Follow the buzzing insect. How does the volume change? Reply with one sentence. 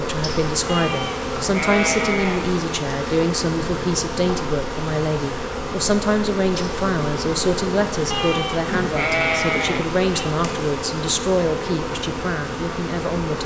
The loudness of the buzzing insect stays about the same.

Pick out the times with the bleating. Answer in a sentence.
You can hear the bleating from 0.7 to 2.6 s and from 8.1 to 10.3 s.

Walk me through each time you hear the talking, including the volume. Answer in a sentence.
You can hear the talking from 0.0 to 13.4 s, at a steady volume.